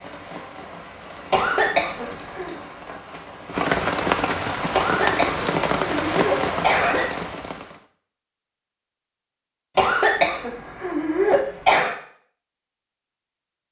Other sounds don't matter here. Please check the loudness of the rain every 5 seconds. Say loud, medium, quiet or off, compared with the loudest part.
loud, loud, off.